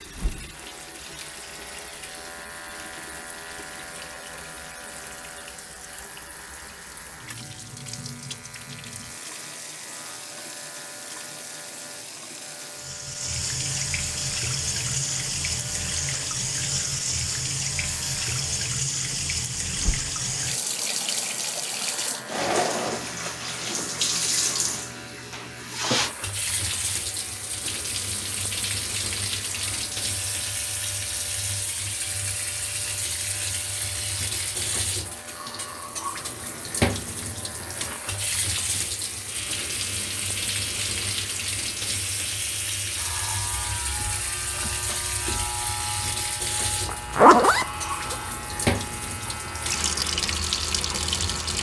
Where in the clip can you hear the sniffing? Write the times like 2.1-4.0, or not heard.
not heard.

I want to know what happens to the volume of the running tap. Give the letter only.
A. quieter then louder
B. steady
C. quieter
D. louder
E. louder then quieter
D.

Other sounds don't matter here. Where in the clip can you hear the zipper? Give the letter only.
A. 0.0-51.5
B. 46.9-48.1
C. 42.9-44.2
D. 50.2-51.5
B.